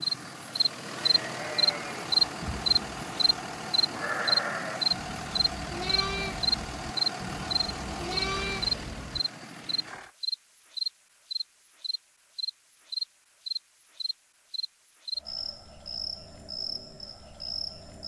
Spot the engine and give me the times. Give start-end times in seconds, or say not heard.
0.0-10.1.